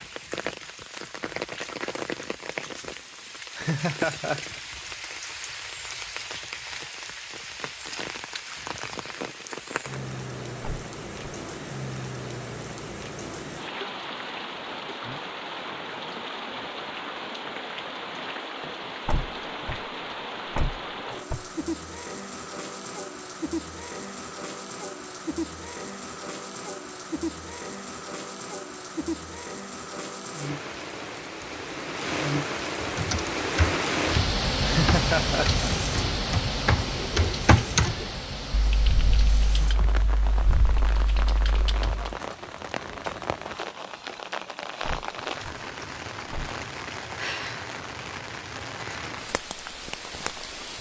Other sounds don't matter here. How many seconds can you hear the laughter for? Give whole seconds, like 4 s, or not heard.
2 s.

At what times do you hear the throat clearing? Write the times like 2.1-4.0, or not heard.
not heard.